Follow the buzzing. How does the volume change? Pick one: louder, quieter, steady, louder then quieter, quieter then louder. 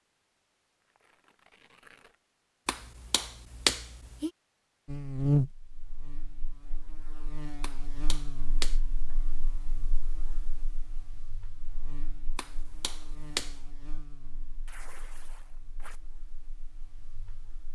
quieter.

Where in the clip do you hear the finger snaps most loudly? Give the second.
4 s.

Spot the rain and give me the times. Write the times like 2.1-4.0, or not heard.
not heard.